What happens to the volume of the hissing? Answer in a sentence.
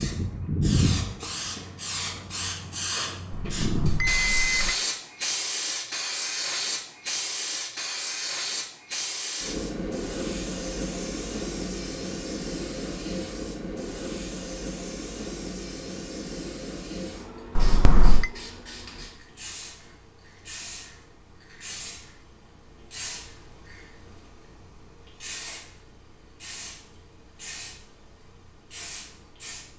The loudness of the hissing goes down.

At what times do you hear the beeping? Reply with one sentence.
You can hear the beeping from 3.3 to 4.8 s and from 17.6 to 18.3 s.